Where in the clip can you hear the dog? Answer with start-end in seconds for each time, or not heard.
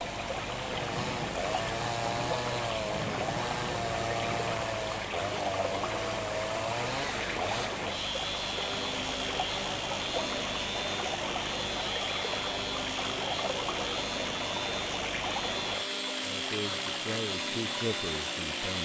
not heard.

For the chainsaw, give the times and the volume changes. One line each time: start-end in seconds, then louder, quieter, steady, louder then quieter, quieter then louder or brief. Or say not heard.
0.0-18.8 steady.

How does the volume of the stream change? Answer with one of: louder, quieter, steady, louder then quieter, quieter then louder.
steady.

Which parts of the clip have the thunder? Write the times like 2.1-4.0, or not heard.
0.7-4.7.